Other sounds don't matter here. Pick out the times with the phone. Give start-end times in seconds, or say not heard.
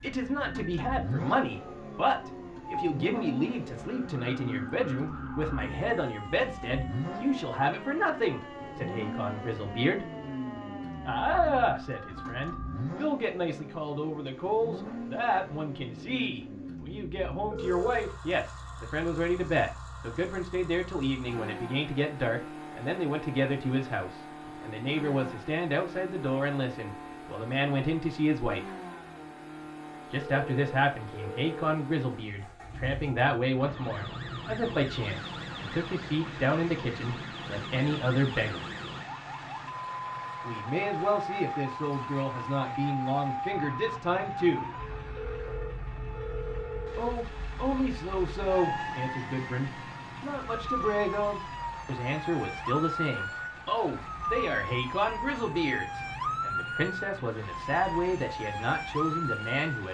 17.5-18.1, 30.2-31.8, 45.1-47.2.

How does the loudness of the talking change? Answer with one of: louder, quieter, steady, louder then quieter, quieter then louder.
steady.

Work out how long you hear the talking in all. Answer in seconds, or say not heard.
53 s.